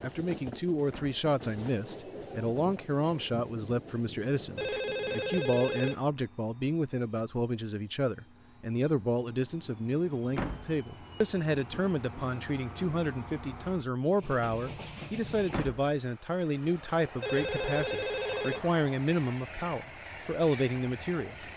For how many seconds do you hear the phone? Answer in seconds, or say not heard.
3 s.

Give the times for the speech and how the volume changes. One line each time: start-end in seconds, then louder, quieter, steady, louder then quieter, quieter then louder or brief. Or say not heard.
0.0-21.4 steady.